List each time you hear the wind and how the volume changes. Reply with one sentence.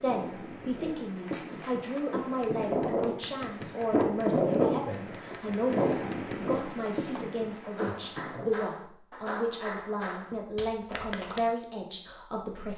The wind can be heard from 0.0 to 8.7 s, getting louder then quieter.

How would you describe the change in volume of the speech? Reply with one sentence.
The loudness of the speech stays about the same.